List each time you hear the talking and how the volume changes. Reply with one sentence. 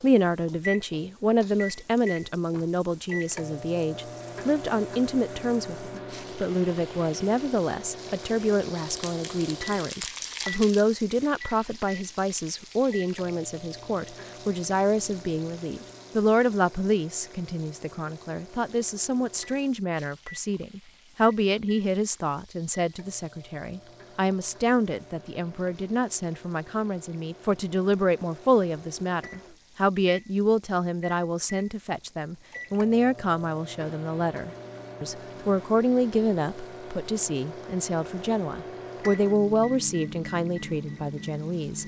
You can hear the talking from 0.0 to 41.8 s, at a steady volume.